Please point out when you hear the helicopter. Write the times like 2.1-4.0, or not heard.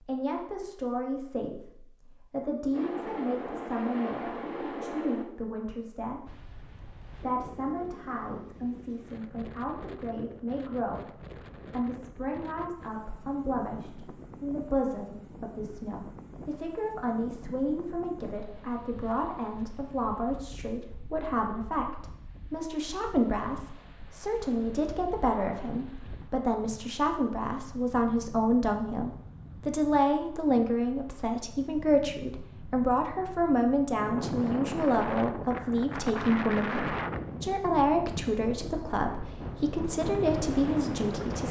2.7-5.2.